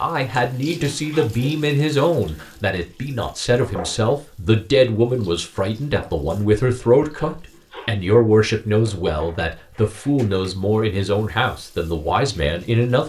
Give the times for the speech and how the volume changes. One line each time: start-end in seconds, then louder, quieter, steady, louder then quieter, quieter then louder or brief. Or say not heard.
0.0-13.0 steady.